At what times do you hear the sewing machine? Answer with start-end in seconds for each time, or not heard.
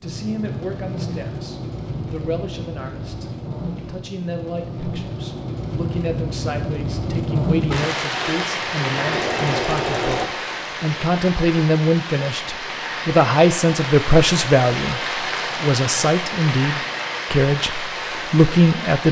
8.1-10.3.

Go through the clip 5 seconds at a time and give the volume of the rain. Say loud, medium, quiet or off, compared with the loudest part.
medium, loud, loud, loud.